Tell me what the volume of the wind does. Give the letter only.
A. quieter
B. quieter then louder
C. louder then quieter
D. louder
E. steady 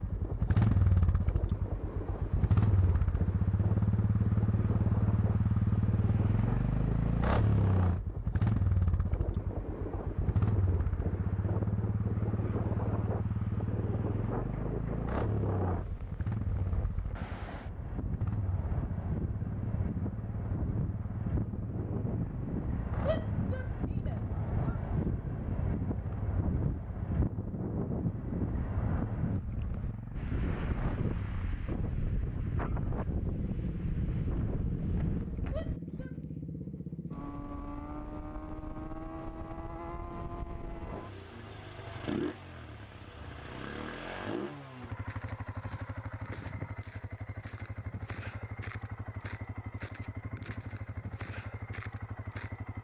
D.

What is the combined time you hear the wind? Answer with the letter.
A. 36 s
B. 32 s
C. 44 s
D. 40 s
A.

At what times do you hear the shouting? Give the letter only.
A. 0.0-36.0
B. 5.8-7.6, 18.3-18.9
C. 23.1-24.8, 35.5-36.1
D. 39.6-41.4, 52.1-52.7
C.